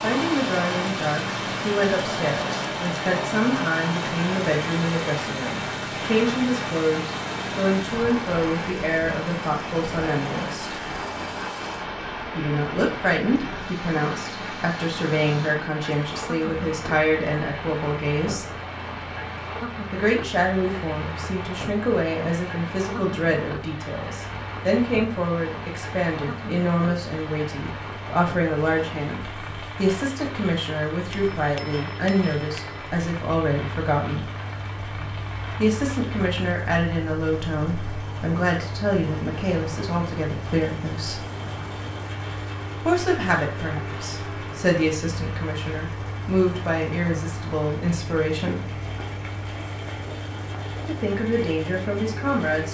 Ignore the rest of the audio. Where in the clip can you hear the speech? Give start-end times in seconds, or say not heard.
0.0-10.8, 12.3-18.6, 19.9-34.3, 35.6-41.2, 42.9-48.6, 50.9-52.7.